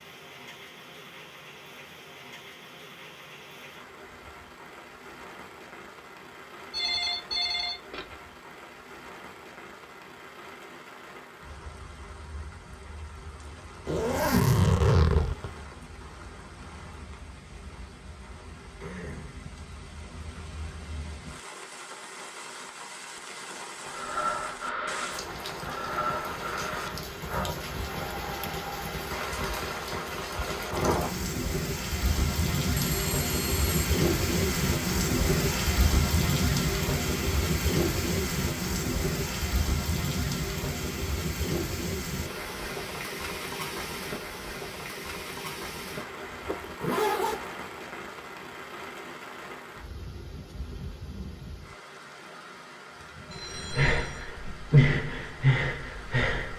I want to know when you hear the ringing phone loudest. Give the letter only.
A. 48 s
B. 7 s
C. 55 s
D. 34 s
B.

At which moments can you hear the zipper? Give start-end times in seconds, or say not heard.
13.8-15.5, 46.5-47.5.